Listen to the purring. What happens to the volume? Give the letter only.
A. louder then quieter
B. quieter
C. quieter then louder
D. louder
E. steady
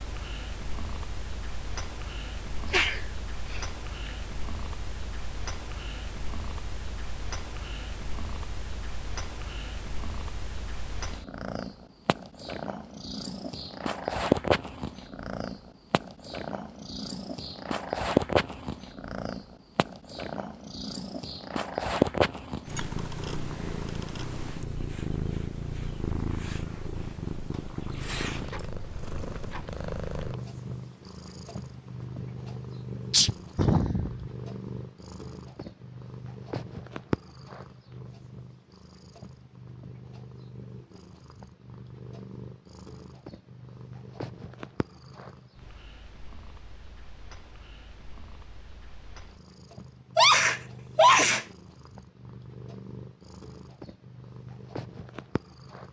A.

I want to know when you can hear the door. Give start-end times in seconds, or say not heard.
not heard.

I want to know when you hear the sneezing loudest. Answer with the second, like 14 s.
51 s.